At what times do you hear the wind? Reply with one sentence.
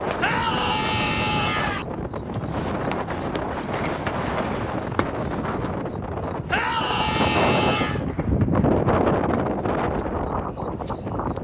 You can hear the wind from 0.0 to 11.3 s.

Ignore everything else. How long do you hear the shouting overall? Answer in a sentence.
The shouting can be heard for 3 seconds in total.